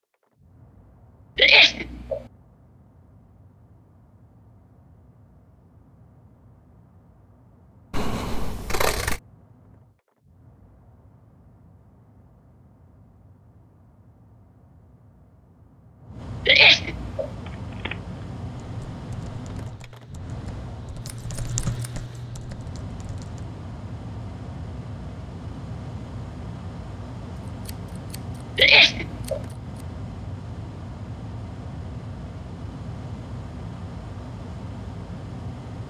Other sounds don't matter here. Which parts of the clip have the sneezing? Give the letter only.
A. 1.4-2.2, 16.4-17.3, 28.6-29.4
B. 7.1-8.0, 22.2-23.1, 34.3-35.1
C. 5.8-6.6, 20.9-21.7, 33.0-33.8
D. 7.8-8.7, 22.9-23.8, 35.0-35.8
A.